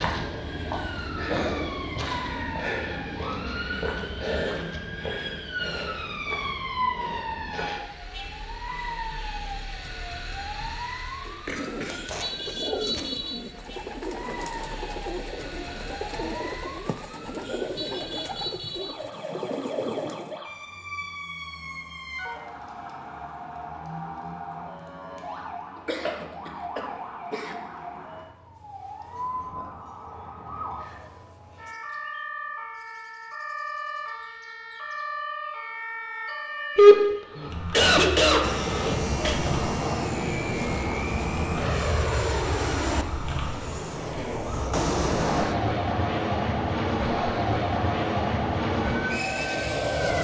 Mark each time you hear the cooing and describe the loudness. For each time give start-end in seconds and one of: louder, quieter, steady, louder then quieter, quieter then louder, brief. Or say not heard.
11.4-20.4 steady.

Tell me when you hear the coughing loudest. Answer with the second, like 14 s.
37 s.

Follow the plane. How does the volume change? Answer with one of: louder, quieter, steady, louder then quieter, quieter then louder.
steady.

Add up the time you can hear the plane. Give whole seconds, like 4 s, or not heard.
12 s.